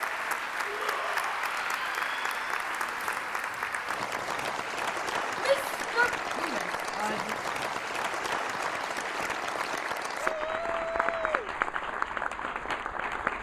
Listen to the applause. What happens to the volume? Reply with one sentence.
The volume of the applause stays about the same.